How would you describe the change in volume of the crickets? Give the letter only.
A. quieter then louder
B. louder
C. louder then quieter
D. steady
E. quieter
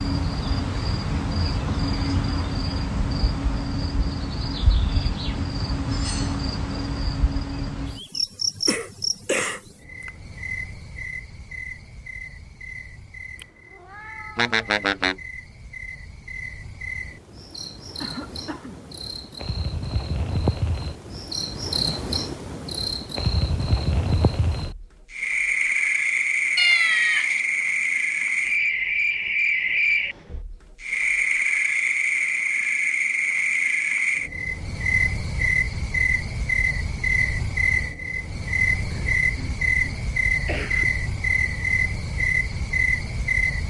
A.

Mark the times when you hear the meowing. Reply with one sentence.
The meowing can be heard from 13.4 to 15.2 s and from 26.6 to 27.4 s.